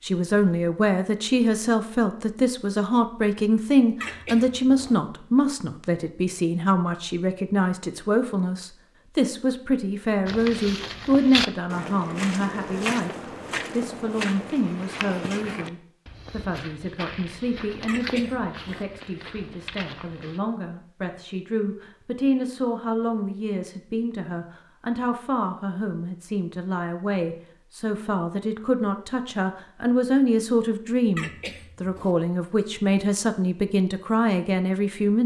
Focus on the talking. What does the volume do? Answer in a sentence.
The loudness of the talking goes down, then up.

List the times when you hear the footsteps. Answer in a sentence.
The footsteps can be heard from 10.2 to 20.4 s.